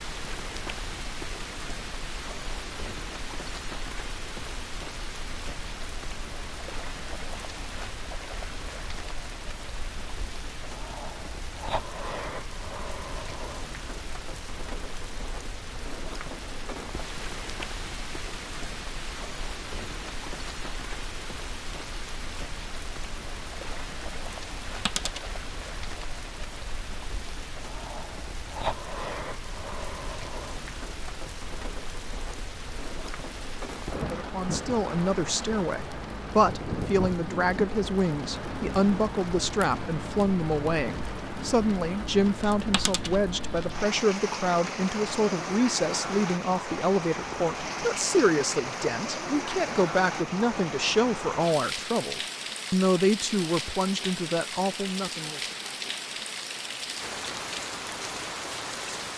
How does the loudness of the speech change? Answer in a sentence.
The loudness of the speech stays about the same.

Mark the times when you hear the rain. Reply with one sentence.
You can hear the rain from 0.0 to 59.1 s.